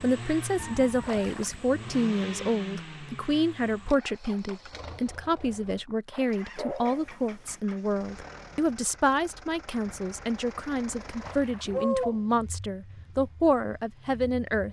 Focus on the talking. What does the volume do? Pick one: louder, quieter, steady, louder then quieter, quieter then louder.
steady.